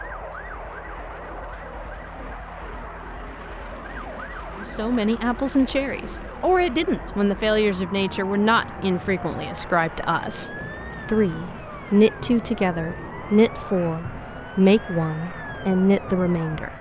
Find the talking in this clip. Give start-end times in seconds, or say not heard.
4.5-16.7.